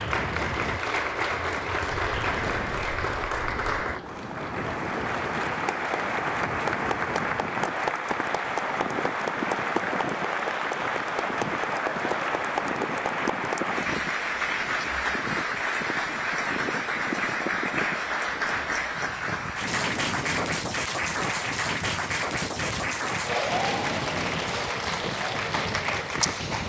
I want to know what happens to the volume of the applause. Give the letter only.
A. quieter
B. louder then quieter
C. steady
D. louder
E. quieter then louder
C.